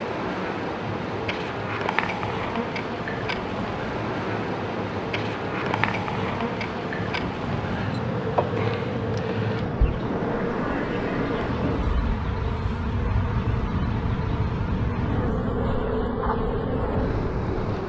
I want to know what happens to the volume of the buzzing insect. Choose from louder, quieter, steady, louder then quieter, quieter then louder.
steady.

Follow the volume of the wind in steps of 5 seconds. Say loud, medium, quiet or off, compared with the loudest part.
medium, loud, loud, loud.